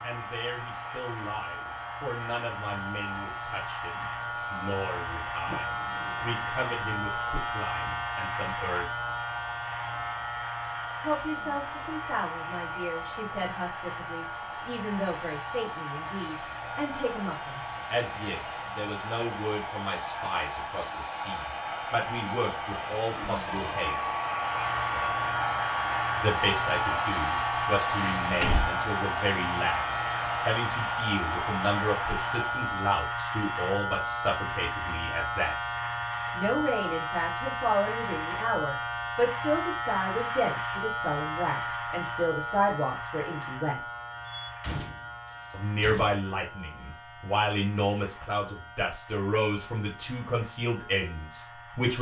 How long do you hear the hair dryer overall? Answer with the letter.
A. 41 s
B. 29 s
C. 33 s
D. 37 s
C.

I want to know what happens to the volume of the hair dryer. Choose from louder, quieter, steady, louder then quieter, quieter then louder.
louder.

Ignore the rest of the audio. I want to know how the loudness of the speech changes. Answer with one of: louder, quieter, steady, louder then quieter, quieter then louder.
louder.